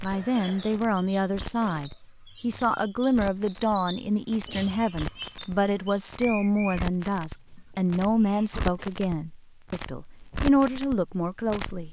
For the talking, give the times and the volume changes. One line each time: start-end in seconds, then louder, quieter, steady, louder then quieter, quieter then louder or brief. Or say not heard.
0.0-11.8 steady.